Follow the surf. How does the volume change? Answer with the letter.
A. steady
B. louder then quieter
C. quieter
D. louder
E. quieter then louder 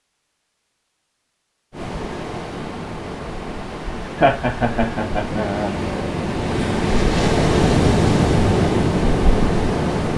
D.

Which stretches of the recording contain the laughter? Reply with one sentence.
The laughter can be heard from 4.2 to 5.8 s.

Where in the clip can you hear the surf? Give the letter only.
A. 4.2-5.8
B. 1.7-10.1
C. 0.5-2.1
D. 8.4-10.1
B.